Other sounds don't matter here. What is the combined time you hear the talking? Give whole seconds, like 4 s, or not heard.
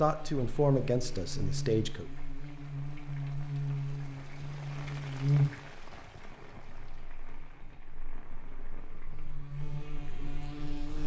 2 s.